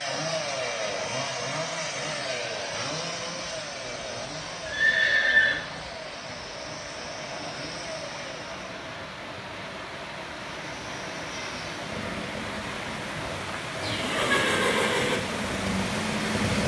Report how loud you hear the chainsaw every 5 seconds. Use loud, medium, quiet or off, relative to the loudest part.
loud, medium, medium, loud.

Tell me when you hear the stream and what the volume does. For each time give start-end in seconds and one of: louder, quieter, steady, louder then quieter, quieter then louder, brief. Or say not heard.
0.0-16.6 louder.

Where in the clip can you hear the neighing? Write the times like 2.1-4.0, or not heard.
4.7-5.5, 13.8-15.2.